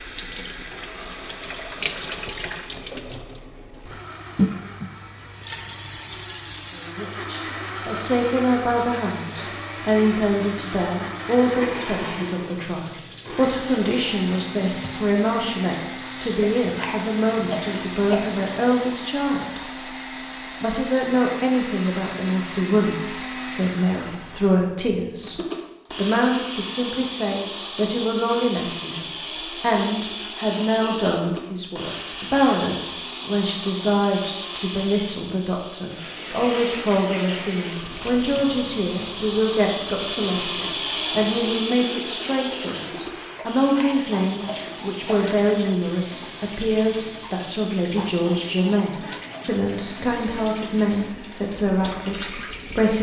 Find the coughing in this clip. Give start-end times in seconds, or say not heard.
16.4-18.4, 43.4-45.4.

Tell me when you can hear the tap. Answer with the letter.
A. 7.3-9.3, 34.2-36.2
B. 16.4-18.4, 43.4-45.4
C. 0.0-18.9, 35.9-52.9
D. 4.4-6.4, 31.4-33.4
C.